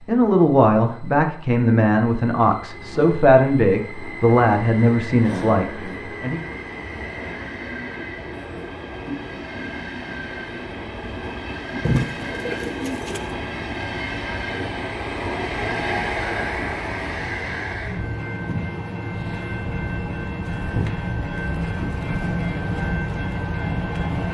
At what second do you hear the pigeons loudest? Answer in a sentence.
The volume of the pigeons peaks at 12 seconds.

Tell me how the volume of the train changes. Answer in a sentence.
The volume of the train goes up.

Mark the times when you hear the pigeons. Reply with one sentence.
You can hear the pigeons from 11.8 to 13.3 s.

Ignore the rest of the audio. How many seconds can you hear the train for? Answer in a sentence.
You can hear the train for 24 seconds altogether.